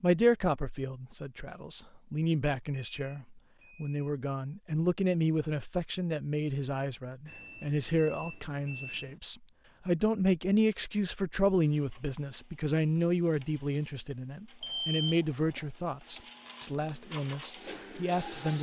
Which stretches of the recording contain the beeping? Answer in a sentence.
You can hear the beeping from 2.7 to 4.1 s, from 7.2 to 9.2 s and from 14.6 to 15.7 s.